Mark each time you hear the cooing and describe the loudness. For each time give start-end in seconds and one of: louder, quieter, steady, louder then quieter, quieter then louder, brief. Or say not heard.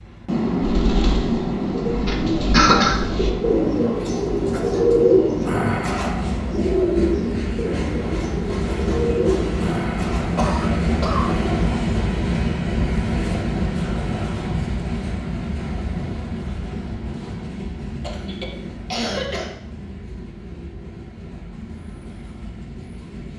0.6-10.4 louder then quieter.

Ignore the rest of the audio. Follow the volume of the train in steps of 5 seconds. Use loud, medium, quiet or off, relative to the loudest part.
loud, loud, loud, medium, quiet.